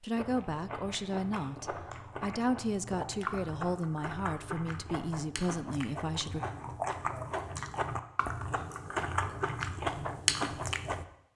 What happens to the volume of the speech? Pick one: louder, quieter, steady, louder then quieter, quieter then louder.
steady.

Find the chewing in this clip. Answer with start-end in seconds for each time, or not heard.
0.1-11.1.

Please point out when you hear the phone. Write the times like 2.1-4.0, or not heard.
not heard.